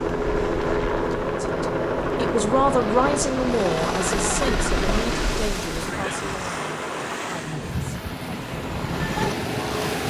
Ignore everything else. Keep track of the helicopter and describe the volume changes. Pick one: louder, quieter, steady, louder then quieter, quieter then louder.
quieter then louder.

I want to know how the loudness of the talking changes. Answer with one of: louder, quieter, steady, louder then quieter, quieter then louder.
quieter.